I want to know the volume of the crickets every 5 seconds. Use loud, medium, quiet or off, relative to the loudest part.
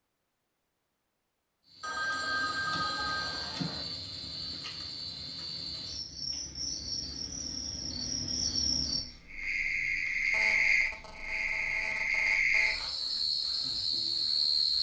medium, medium, loud.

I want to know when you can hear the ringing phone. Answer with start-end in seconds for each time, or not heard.
1.8-3.9, 10.3-12.8.